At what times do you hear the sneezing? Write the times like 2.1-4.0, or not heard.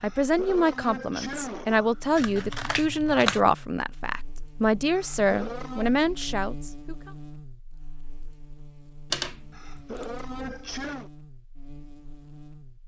0.0-2.0, 4.9-6.0, 9.5-11.1.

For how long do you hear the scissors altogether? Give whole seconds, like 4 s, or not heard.
3 s.